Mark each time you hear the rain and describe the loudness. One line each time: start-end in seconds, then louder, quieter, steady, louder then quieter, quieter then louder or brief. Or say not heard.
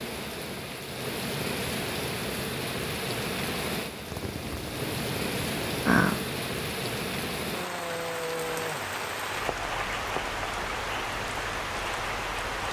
0.0-12.6 steady.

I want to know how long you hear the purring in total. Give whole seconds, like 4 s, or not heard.
2 s.